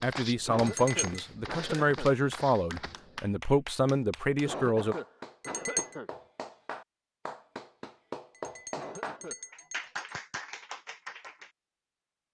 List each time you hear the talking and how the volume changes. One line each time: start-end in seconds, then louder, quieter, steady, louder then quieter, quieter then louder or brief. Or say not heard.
0.0-5.0 steady.